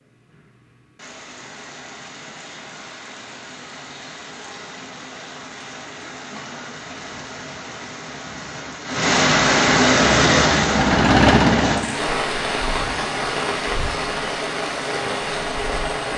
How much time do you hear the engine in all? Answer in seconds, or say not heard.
2 s.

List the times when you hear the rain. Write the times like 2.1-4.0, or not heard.
0.0-16.1.